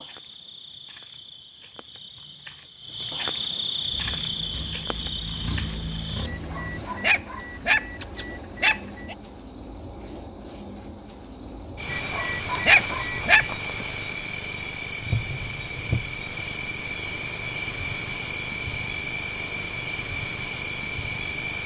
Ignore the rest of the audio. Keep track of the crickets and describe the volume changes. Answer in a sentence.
The volume of the crickets stays about the same.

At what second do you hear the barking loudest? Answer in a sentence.
The volume of the barking peaks at 13 seconds.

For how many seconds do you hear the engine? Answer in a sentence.
The engine can be heard for 3 seconds in total.